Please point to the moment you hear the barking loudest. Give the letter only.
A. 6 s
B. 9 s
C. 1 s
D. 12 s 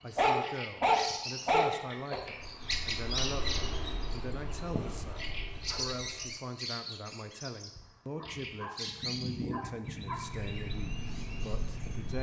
C.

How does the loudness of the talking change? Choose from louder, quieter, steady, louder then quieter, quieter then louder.
steady.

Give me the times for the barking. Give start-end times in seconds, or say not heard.
0.1-2.2, 4.7-6.2, 8.2-10.2.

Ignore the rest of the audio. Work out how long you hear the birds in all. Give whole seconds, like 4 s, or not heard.
12 s.